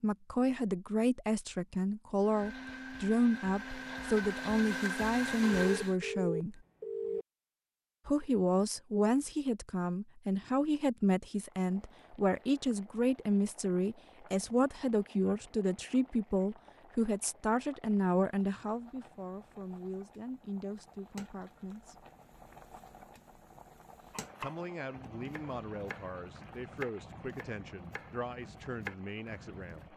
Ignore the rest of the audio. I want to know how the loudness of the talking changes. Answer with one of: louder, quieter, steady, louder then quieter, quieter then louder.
quieter.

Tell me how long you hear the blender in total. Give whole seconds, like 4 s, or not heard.
4 s.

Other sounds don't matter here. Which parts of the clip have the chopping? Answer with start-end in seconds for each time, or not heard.
24.1-29.9.